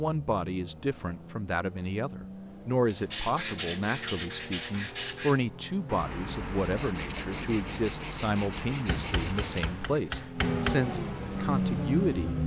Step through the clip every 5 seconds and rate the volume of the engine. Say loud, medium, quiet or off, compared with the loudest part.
quiet, quiet, loud.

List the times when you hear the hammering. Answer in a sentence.
The hammering can be heard from 8.8 to 10.8 s.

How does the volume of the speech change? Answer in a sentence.
The volume of the speech stays about the same.